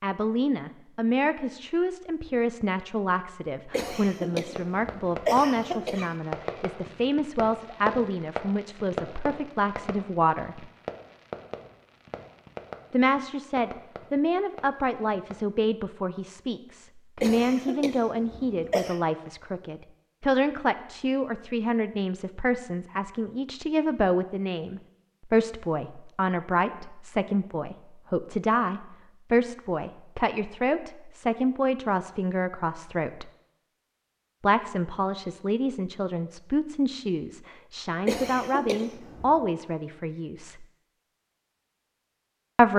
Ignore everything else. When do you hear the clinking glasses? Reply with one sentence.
You can't hear the clinking glasses here.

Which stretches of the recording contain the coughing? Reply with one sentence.
The coughing can be heard from 3.7 to 6.2 s, from 17.2 to 19.0 s and from 38.0 to 39.5 s.